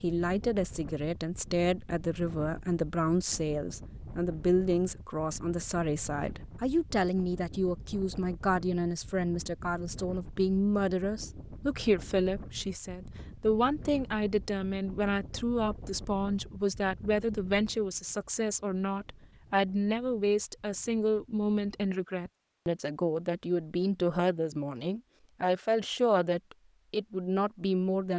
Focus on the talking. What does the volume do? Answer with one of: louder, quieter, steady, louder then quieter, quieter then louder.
steady.